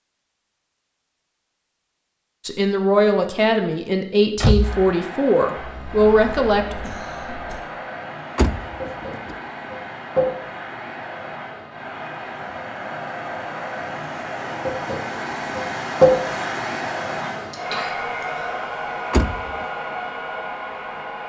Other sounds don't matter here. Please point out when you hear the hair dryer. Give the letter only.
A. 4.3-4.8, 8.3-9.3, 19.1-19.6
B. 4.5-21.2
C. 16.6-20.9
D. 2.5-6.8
B.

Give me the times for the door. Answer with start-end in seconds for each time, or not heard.
4.3-4.8, 8.3-9.3, 19.1-19.6.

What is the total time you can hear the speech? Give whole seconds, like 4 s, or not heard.
4 s.